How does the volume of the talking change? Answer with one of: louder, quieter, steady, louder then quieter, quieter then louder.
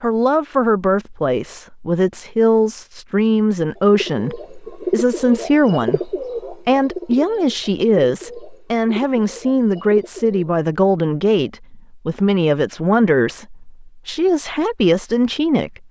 steady.